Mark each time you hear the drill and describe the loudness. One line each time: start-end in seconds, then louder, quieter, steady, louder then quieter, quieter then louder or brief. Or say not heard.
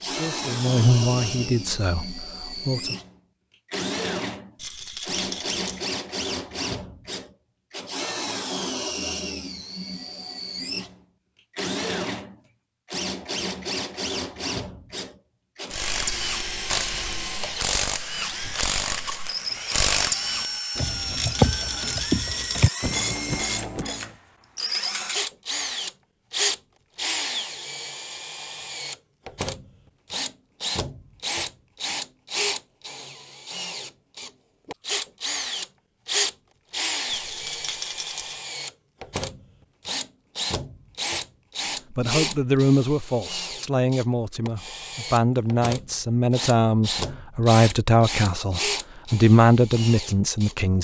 0.0-50.5 steady.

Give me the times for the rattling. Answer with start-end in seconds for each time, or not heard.
4.5-5.8, 20.8-22.7, 37.0-38.4.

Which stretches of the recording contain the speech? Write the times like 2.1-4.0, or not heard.
0.0-3.0, 41.9-50.7.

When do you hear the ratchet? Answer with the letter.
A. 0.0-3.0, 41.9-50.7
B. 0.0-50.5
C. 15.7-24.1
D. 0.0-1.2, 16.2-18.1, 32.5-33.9
C.